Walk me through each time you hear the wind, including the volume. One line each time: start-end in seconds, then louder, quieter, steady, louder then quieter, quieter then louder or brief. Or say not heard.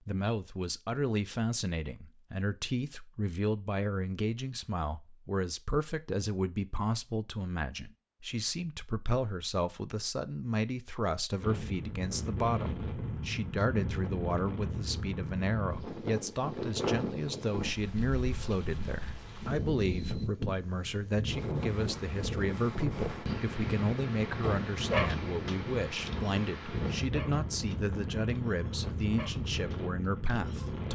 11.4-30.9 steady.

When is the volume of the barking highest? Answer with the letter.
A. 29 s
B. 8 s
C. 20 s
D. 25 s
D.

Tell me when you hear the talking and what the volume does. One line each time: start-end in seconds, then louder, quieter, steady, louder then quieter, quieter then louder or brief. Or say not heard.
0.1-30.9 steady.